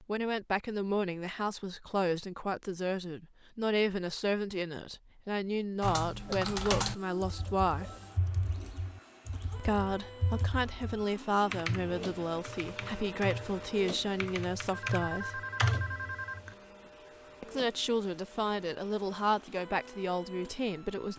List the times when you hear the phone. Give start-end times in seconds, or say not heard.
14.7-16.4.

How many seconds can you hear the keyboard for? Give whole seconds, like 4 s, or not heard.
11 s.